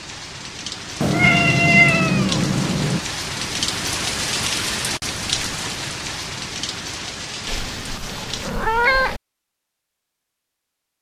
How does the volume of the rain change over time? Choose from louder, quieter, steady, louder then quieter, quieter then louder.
louder then quieter.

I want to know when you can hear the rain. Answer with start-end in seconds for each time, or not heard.
0.0-8.5.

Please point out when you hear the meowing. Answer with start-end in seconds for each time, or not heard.
1.0-3.0, 7.5-9.2.